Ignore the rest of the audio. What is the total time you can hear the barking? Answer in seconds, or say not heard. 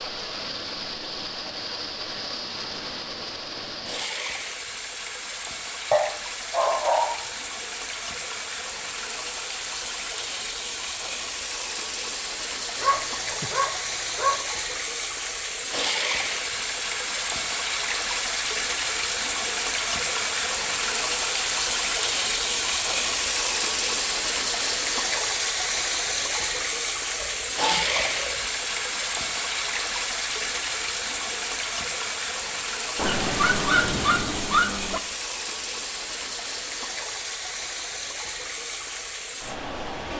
6 s.